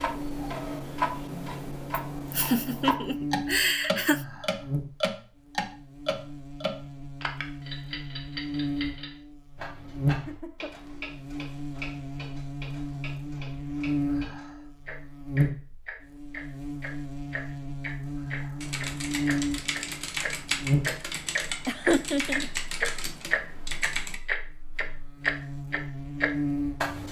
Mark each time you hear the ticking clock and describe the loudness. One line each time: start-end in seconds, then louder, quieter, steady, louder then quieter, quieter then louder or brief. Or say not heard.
0.0-27.0 quieter then louder.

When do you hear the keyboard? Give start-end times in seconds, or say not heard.
18.6-24.2.